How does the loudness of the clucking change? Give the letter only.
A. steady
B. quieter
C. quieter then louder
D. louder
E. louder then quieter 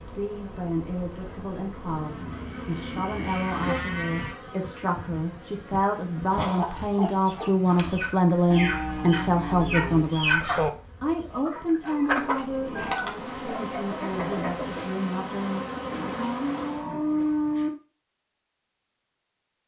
E.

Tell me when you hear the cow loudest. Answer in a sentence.
The volume of the cow peaks at 17 seconds.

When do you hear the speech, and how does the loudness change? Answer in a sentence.
The speech can be heard from 0.1 to 15.6 s, getting louder then quieter.